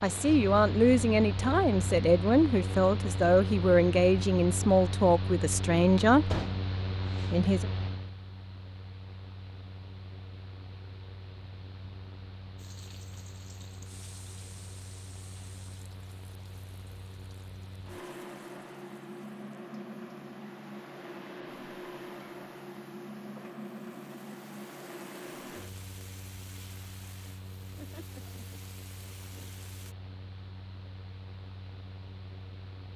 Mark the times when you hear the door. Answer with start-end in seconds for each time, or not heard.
6.3-7.3.